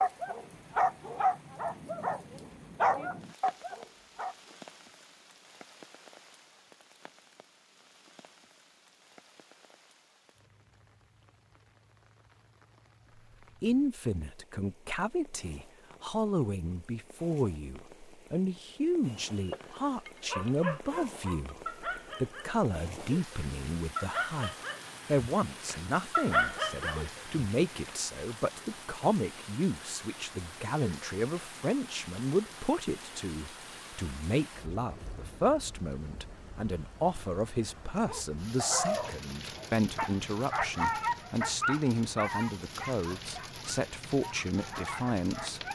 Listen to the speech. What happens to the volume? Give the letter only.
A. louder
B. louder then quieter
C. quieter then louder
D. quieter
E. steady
E.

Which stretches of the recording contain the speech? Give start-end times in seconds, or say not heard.
13.6-45.6.